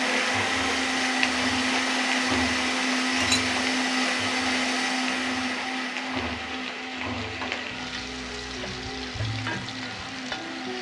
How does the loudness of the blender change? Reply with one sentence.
The volume of the blender goes down.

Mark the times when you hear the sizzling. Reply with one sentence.
You can hear the sizzling from 0.1 to 10.7 s.